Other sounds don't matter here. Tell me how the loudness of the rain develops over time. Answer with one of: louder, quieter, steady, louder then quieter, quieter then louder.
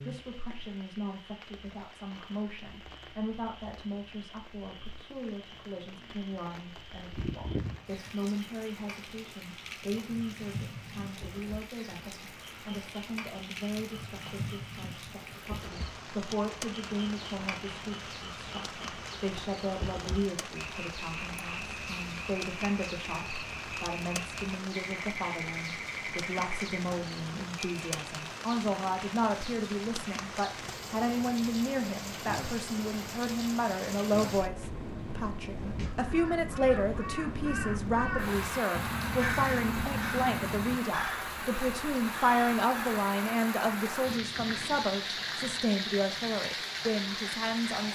louder.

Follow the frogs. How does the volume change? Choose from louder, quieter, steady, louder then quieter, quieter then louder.
louder.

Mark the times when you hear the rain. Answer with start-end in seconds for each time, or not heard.
0.0-47.8.